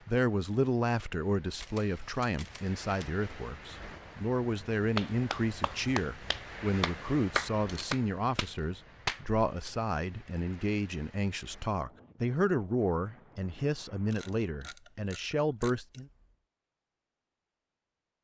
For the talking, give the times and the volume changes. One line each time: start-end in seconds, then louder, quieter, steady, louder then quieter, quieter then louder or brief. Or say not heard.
0.1-16.1 steady.